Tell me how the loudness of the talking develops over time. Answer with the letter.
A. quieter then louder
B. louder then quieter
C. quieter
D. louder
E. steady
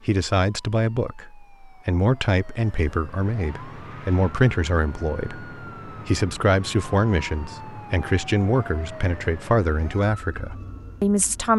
E.